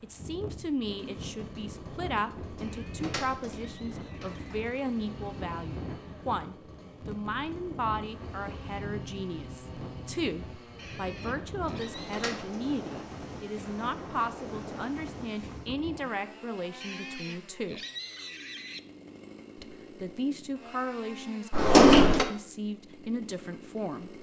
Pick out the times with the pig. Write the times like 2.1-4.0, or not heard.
2.6-4.7, 10.8-12.2, 16.8-18.8.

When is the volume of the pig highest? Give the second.
18 s.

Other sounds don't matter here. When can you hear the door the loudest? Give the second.
22 s.